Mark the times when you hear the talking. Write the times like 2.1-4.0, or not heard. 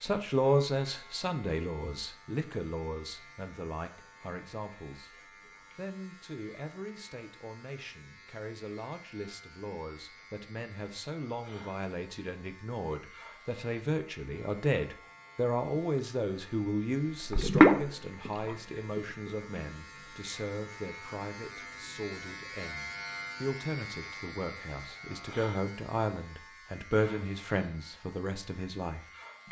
0.0-5.2, 5.8-29.4.